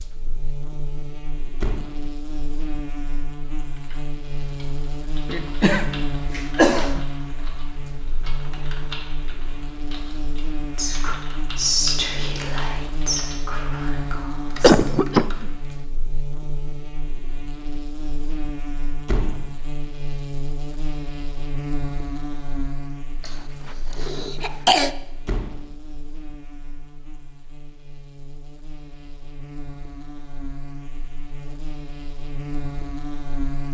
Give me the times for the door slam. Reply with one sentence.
The door slam can be heard from 1.6 to 2.0 s, from 19.1 to 19.6 s and from 25.2 to 25.8 s.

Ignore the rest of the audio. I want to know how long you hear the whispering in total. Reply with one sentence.
The whispering can be heard for 4 seconds in total.